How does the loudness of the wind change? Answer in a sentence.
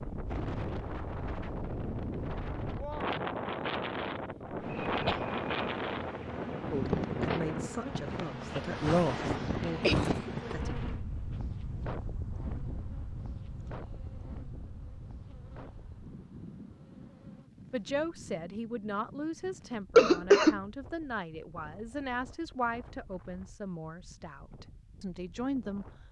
The loudness of the wind goes down.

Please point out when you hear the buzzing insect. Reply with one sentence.
You can hear the buzzing insect from 4.5 to 17.5 s.